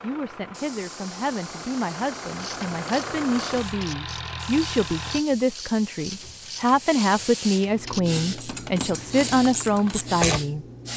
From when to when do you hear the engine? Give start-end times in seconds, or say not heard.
0.0-5.2.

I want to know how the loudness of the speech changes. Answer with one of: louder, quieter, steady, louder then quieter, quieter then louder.
louder.